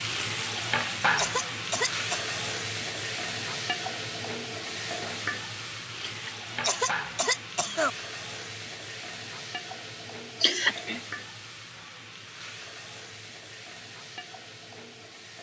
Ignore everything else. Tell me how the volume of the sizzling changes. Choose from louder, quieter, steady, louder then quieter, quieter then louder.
quieter.